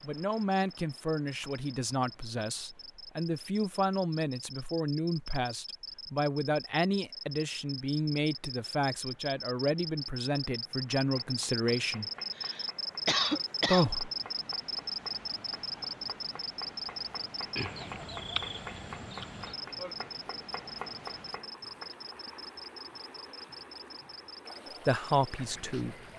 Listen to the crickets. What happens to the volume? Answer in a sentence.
The volume of the crickets goes up, then down.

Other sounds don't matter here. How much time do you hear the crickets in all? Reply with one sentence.
The crickets can be heard for 26 seconds in total.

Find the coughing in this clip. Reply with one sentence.
You can hear the coughing from 12.3 to 13.9 s.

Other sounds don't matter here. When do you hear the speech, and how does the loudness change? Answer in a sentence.
You can hear the speech from 0.0 to 12.1 s, at a steady volume; briefly from 13.7 to 14.1 s; and briefly from 24.9 to 25.9 s.